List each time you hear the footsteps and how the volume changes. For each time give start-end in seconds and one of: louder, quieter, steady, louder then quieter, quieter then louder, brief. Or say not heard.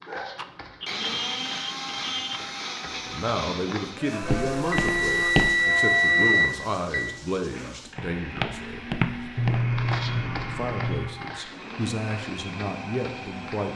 0.0-5.5 louder
8.0-13.7 quieter.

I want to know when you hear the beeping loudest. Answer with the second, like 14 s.
6 s.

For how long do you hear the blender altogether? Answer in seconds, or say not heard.
14 s.